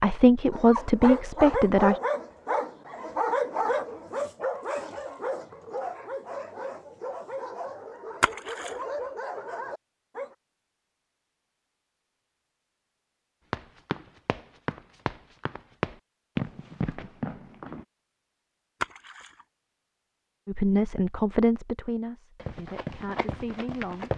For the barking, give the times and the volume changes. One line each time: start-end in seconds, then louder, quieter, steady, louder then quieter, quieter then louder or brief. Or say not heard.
0.5-10.3 quieter.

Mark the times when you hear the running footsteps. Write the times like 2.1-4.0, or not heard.
13.5-17.9, 22.4-24.1.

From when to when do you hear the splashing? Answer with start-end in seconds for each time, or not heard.
8.2-8.8, 18.8-19.4.